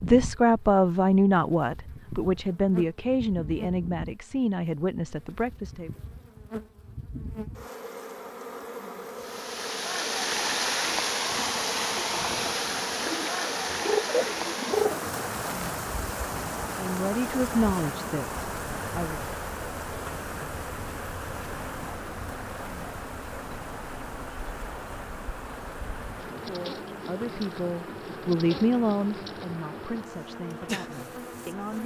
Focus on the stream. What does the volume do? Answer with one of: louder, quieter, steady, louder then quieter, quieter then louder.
quieter.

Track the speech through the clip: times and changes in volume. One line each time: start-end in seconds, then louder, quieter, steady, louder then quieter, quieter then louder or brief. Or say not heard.
0.0-5.9 quieter
16.8-19.2 brief
26.4-31.8 louder then quieter.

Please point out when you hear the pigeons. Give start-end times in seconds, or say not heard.
13.1-15.1.